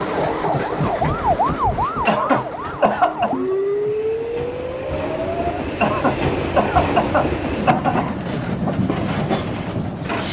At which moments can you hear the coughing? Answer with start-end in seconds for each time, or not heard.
2.0-3.4, 5.8-8.1.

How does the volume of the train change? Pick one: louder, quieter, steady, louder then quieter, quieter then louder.
quieter then louder.